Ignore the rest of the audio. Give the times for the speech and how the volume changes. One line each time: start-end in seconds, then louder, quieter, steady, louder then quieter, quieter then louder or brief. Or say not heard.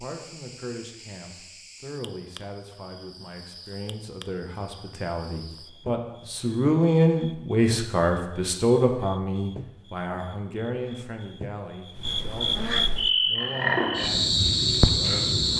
0.0-15.3 louder then quieter.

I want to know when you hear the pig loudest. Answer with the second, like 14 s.
14 s.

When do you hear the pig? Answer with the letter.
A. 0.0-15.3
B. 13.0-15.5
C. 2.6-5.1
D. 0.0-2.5
B.